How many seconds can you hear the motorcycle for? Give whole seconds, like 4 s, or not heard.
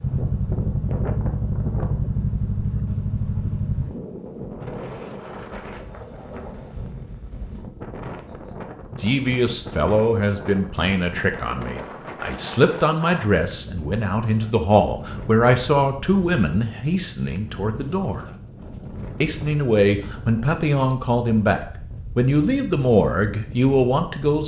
4 s.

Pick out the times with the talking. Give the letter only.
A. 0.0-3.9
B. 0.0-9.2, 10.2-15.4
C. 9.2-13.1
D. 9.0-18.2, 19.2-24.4
D.